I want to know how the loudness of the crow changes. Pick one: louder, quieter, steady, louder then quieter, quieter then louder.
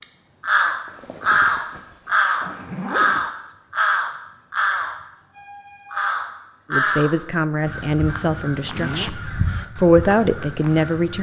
quieter.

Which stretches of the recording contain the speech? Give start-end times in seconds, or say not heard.
6.7-11.1.